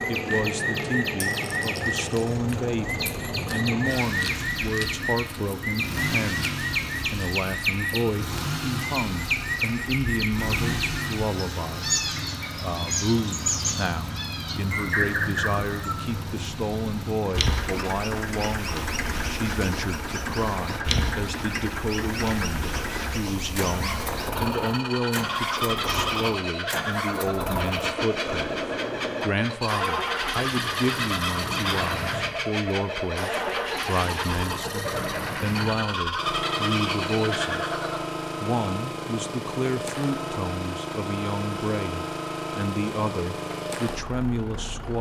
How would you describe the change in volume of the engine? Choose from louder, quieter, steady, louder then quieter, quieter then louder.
steady.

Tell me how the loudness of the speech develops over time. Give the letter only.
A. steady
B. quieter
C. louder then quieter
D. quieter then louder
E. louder
A.